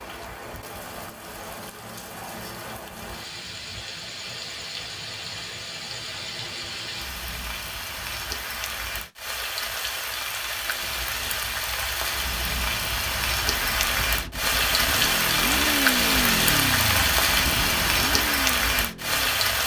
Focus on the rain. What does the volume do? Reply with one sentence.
The loudness of the rain goes up.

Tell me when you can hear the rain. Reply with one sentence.
The rain can be heard from 0.0 to 19.6 s.